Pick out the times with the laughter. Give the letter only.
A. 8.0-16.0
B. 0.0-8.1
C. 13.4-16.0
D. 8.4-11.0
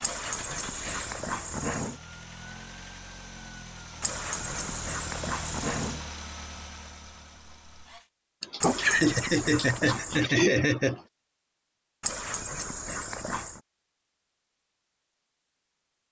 D.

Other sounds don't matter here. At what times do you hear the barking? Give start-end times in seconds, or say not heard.
0.0-1.9, 4.0-6.0, 8.6-10.2, 12.0-13.6.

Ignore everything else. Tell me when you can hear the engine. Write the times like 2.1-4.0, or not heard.
0.0-8.1.